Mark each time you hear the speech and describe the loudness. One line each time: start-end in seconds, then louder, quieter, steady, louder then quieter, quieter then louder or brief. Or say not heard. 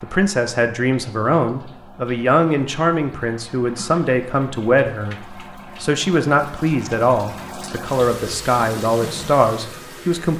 0.0-10.3 steady.